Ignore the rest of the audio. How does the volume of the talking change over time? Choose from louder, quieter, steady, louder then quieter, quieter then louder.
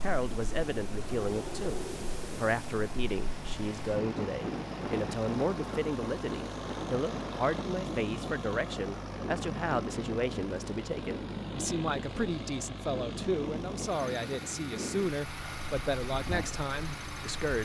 steady.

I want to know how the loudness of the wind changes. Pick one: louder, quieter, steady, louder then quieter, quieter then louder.
steady.